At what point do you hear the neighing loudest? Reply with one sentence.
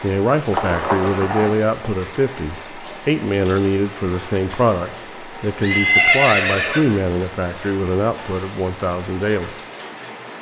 The volume of the neighing peaks at 6 seconds.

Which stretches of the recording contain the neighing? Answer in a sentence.
You can hear the neighing from 0.5 to 1.6 s and from 5.6 to 7.0 s.